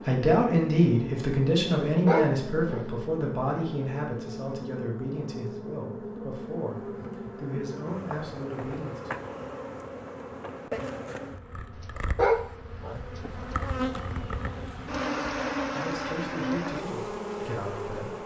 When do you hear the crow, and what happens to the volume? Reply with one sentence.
The crow can't be heard in this clip.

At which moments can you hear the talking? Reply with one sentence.
You can hear the talking from 0.1 to 9.2 s and from 15.8 to 18.2 s.